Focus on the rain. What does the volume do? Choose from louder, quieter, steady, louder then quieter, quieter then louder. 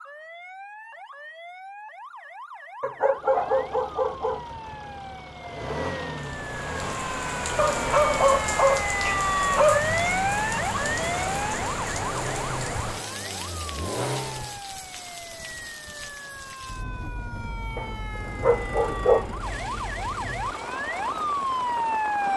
quieter.